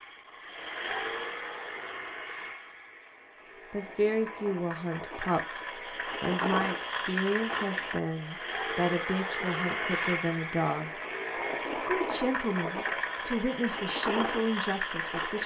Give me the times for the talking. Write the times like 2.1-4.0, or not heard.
3.7-11.0, 11.8-15.4.